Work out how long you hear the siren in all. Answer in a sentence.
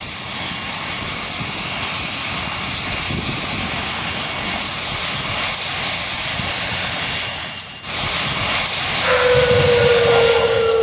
The siren can be heard for 2 seconds in total.